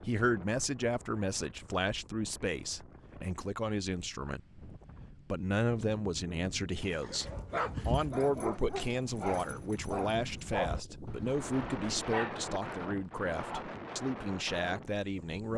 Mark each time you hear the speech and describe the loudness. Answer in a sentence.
You can hear the speech from 0.0 to 15.5 s, at a steady volume.